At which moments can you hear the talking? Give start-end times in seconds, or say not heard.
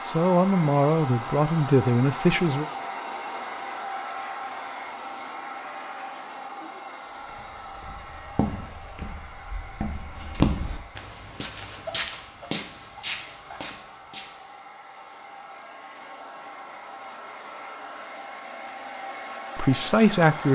0.0-2.6, 19.6-20.5.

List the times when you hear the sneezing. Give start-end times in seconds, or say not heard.
not heard.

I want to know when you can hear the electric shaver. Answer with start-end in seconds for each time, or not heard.
not heard.